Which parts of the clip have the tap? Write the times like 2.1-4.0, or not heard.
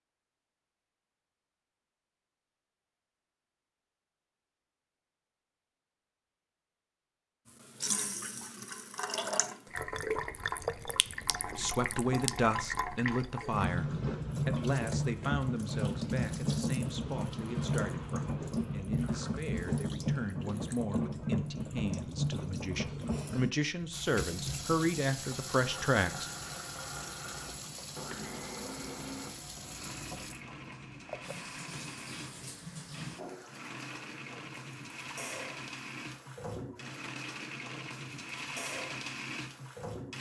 7.5-40.1.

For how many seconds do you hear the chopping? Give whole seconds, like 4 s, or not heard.
not heard.